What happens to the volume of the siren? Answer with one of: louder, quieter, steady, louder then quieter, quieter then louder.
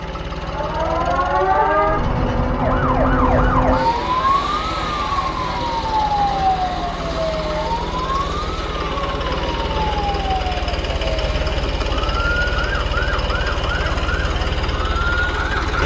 quieter.